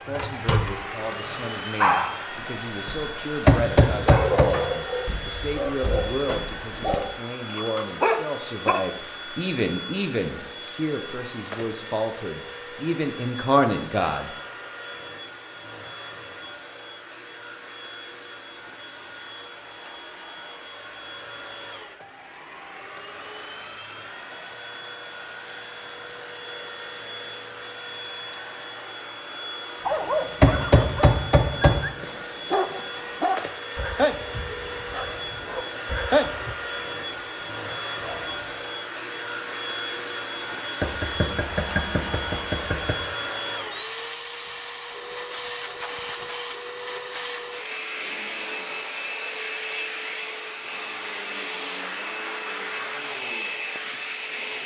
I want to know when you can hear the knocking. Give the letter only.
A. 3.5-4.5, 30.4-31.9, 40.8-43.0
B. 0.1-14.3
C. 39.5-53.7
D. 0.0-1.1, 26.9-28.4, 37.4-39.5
A.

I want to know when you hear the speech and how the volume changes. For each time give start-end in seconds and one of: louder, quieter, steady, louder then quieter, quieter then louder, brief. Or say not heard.
0.1-14.3 louder.